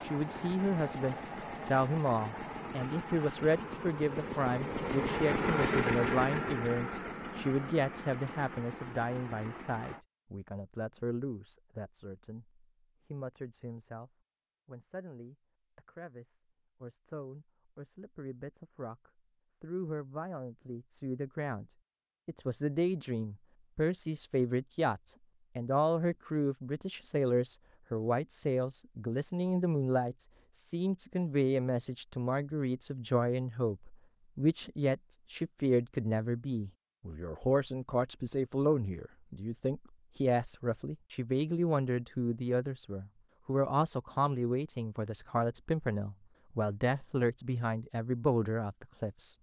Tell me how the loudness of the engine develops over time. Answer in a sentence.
The volume of the engine goes up, then down.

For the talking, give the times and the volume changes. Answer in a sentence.
The talking can be heard from 0.0 to 49.3 s, getting quieter then louder.